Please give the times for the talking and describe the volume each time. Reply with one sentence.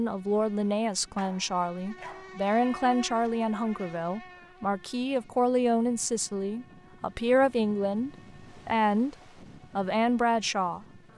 You can hear the talking from 0.0 to 11.1 s, at a steady volume.